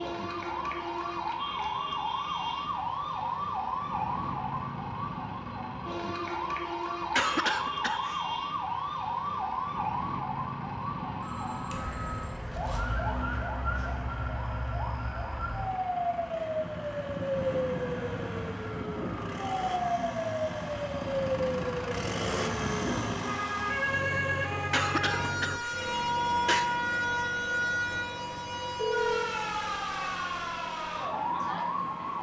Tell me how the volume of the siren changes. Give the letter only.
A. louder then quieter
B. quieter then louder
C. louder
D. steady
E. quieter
D.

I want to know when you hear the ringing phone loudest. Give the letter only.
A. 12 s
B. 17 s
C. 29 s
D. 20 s
C.